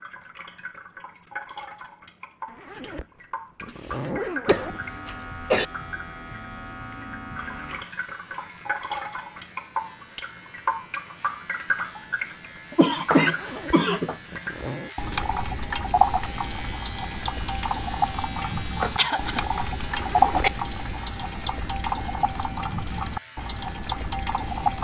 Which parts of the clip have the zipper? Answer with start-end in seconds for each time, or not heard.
2.5-4.8, 13.2-14.9, 19.9-20.5.